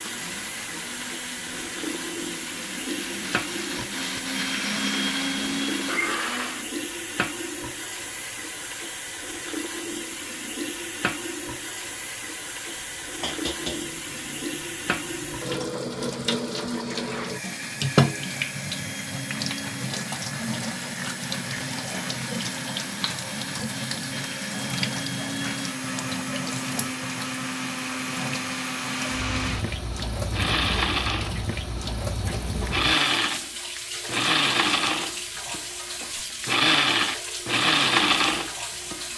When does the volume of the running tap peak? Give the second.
18 s.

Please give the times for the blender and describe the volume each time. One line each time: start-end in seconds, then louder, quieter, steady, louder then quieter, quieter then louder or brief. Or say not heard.
0.0-6.7 louder
17.4-39.0 louder.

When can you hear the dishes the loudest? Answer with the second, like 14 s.
14 s.